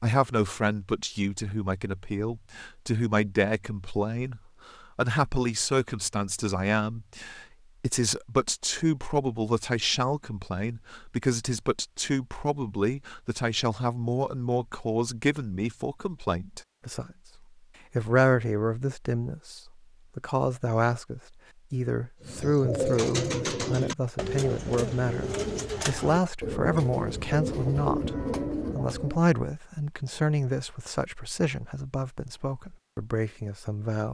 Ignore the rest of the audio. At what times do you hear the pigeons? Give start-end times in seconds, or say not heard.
22.2-29.2.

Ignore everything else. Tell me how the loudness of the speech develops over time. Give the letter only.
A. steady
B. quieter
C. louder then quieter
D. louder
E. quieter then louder
A.